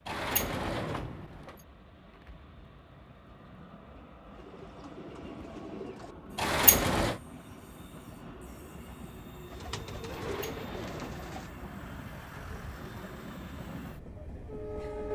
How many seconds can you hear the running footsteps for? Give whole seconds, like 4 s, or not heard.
not heard.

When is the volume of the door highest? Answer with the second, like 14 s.
7 s.